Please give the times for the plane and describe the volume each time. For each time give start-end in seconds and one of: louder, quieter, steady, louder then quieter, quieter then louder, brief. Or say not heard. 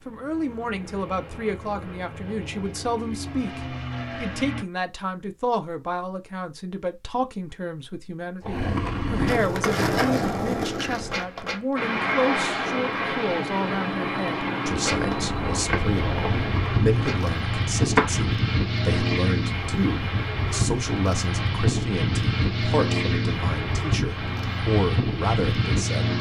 0.0-4.7 louder
11.8-26.1 steady.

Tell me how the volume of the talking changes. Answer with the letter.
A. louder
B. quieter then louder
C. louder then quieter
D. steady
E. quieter
D.